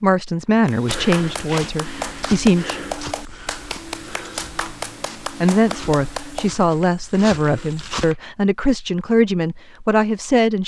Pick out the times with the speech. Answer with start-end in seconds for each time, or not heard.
0.0-2.8, 5.4-10.6.